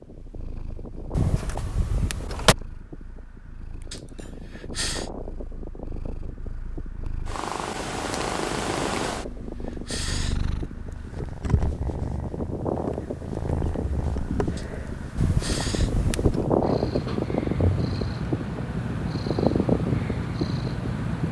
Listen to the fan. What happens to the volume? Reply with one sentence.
The loudness of the fan goes up.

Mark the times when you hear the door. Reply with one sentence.
You can hear the door from 1.1 to 2.5 s and from 15.2 to 16.4 s.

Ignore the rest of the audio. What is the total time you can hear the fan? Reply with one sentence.
You can hear the fan for 21 seconds altogether.